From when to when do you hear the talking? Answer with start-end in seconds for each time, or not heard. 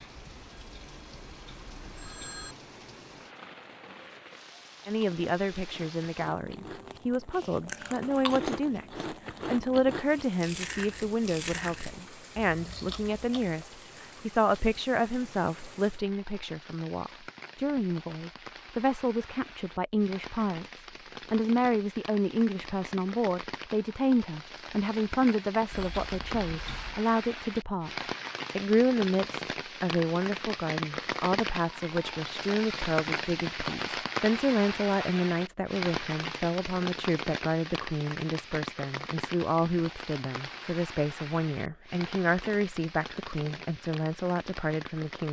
4.8-45.2.